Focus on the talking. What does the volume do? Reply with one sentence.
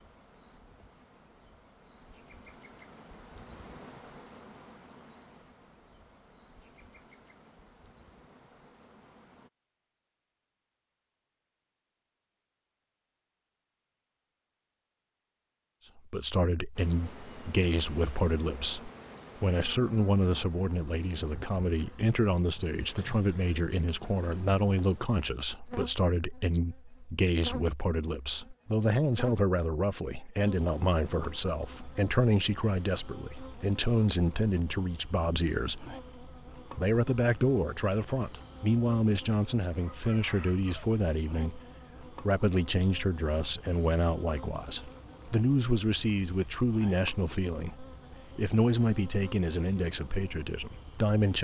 The volume of the talking stays about the same.